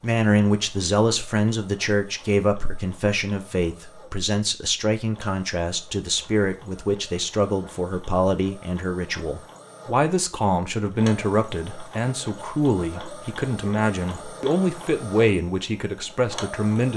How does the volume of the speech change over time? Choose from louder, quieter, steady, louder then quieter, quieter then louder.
steady.